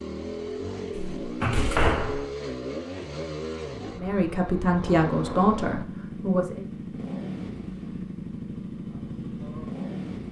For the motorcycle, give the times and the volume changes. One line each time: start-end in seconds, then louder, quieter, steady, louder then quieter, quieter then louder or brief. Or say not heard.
0.0-10.2 steady.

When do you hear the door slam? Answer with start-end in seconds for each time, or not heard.
0.9-2.3.